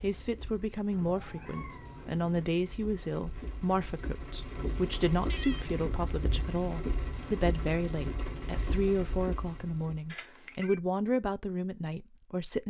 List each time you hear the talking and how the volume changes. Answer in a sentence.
You can hear the talking from 0.0 to 12.6 s, at a steady volume.